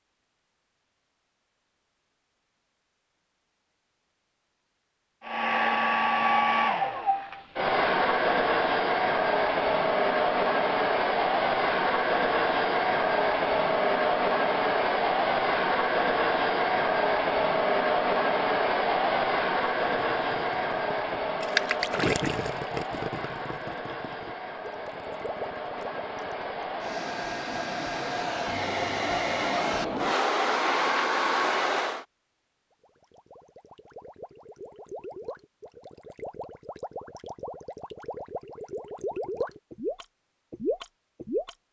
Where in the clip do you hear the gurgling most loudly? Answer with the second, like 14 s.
22 s.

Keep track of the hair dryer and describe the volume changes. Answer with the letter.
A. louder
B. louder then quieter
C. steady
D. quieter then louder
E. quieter
D.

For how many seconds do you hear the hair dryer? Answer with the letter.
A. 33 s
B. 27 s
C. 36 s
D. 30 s
B.